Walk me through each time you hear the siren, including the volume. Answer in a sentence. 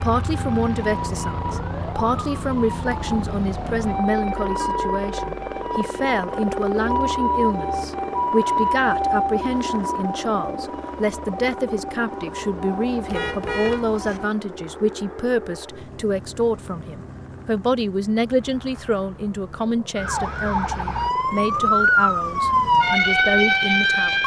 You can hear the siren from 0.0 to 14.2 s, getting louder then quieter; and from 19.9 to 24.2 s, getting louder.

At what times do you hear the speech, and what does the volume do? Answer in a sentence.
The speech can be heard from 0.0 to 24.2 s, at a steady volume.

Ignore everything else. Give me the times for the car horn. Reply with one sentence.
You can hear the car horn from 13.1 to 14.2 s.